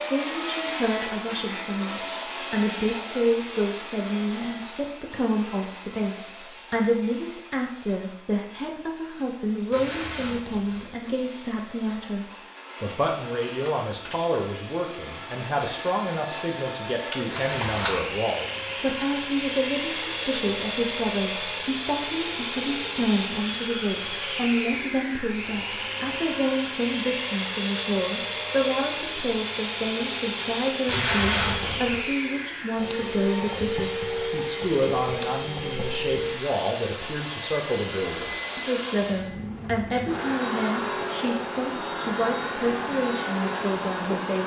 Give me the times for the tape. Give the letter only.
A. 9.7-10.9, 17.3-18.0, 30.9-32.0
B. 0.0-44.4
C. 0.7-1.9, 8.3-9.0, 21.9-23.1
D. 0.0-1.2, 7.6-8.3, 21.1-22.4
A.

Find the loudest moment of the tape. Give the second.
31 s.